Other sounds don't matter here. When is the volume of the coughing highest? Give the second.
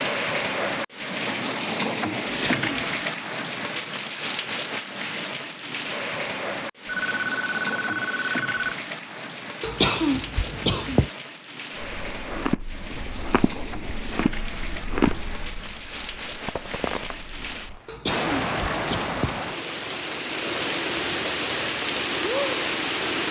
10 s.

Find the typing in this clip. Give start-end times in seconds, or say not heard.
not heard.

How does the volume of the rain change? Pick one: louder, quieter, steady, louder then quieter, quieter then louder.
quieter then louder.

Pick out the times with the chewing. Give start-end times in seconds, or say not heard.
11.8-17.8.